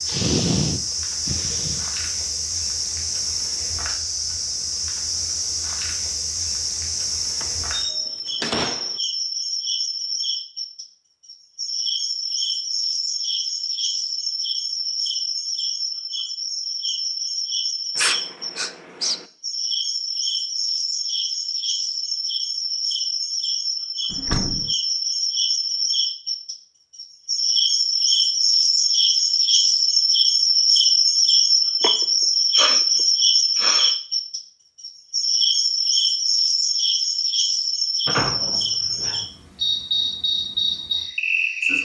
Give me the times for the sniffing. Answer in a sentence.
You can hear the sniffing from 0.1 to 1.9 s, from 17.9 to 19.2 s and from 31.8 to 34.0 s.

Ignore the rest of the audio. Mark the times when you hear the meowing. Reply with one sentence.
You can't hear the meowing here.